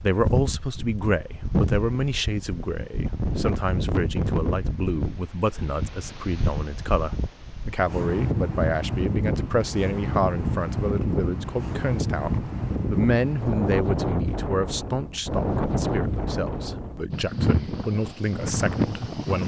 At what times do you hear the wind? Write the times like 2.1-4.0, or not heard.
0.0-19.4.